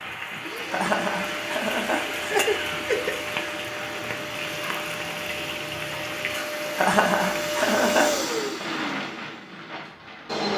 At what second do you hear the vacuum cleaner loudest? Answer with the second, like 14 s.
8 s.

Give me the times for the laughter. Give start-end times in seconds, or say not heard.
0.7-3.2, 6.8-8.2.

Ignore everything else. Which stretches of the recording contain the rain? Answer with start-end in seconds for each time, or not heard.
0.0-10.5.